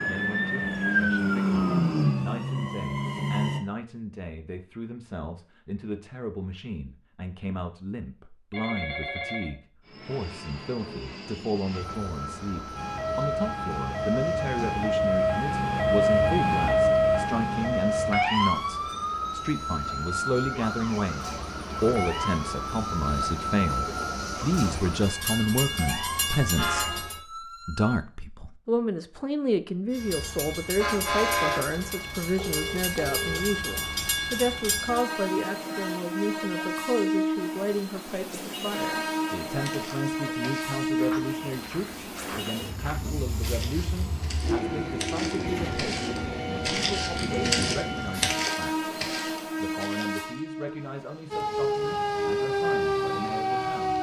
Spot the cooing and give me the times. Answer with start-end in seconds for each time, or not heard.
not heard.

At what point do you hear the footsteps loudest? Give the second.
48 s.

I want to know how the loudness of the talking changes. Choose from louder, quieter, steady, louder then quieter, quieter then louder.
louder then quieter.